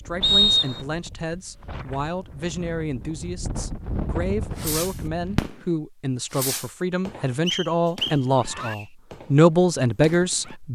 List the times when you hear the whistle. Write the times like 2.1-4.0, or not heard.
0.2-0.8, 7.5-8.8.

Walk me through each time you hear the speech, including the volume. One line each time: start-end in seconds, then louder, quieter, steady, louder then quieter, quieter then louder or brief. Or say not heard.
0.1-10.7 louder.